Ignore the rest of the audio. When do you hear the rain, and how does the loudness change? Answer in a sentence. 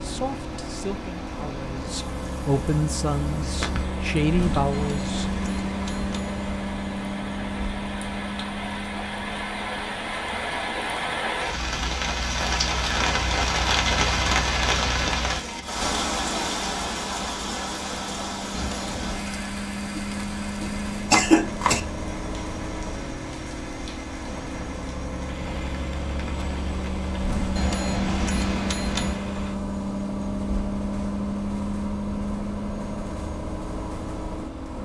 You can hear the rain from 0.0 to 29.6 s, getting louder then quieter.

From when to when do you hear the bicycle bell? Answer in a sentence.
You can hear the bicycle bell from 4.7 to 6.4 s, from 18.5 to 19.4 s and from 27.6 to 29.2 s.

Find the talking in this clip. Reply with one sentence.
The talking can be heard from 0.0 to 5.2 s.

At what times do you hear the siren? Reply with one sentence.
You can't hear the siren here.